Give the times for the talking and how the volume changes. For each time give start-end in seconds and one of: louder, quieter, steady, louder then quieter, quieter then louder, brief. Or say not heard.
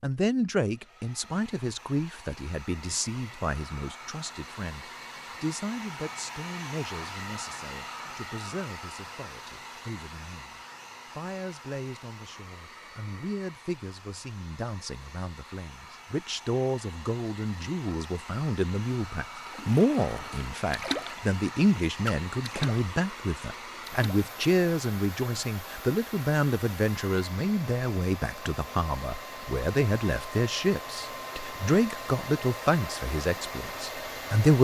0.0-34.5 quieter then louder.